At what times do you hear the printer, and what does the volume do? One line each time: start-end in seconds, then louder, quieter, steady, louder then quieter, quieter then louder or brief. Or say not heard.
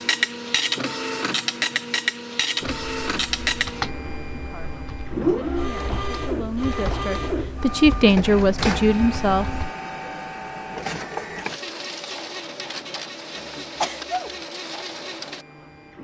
0.0-15.9 quieter.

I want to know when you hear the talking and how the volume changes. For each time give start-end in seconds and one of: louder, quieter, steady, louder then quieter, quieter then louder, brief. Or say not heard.
4.3-9.5 louder.